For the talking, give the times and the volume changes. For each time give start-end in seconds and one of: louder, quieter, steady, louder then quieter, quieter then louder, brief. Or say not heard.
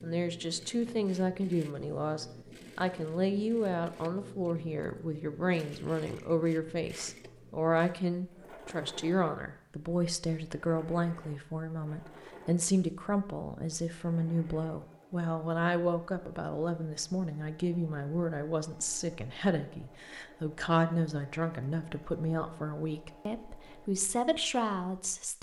0.0-25.3 steady.